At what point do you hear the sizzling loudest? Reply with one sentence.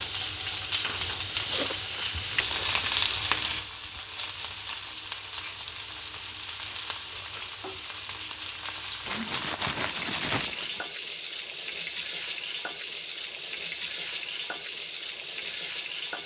The volume of the sizzling peaks at 3 seconds.